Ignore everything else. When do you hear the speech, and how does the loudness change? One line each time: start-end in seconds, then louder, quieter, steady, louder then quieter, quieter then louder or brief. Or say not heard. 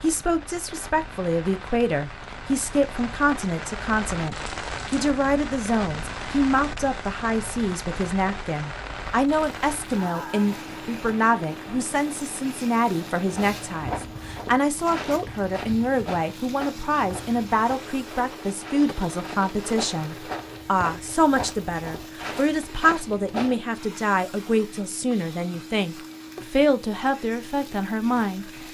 0.0-28.4 steady.